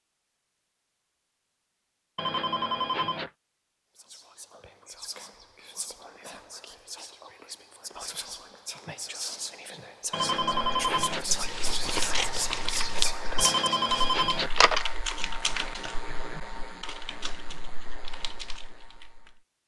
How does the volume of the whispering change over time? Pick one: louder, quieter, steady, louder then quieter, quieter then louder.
louder.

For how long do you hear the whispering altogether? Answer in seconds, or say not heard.
10 s.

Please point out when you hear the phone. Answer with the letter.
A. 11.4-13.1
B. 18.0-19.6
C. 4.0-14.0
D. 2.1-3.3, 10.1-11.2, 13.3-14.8
D.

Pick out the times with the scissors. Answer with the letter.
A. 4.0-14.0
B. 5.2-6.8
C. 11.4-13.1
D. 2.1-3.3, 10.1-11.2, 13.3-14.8
C.